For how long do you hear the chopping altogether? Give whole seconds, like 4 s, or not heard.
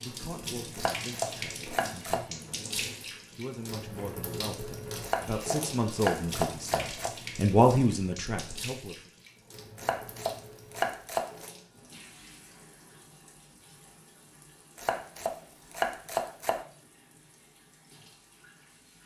7 s.